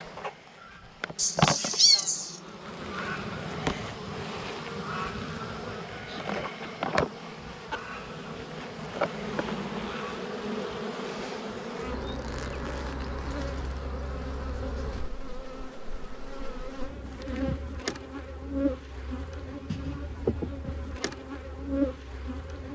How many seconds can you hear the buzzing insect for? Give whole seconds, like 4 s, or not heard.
23 s.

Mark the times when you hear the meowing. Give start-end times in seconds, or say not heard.
1.1-2.4.